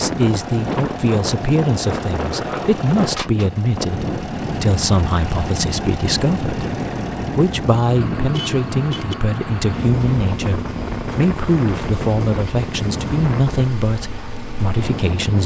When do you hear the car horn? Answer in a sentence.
The car horn can be heard from 8.3 to 9.2 s.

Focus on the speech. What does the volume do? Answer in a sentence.
The loudness of the speech stays about the same.